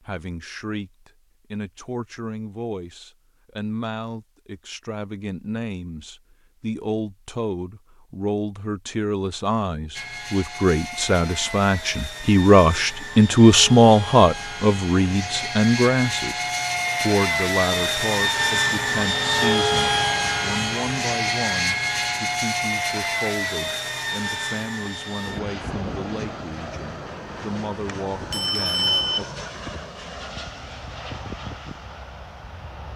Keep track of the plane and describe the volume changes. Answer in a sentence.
The volume of the plane goes up, then down.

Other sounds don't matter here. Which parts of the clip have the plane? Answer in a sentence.
The plane can be heard from 9.9 to 32.9 s.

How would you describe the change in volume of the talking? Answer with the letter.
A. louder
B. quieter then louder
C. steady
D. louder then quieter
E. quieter
D.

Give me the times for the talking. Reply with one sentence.
The talking can be heard from 0.0 to 29.2 s.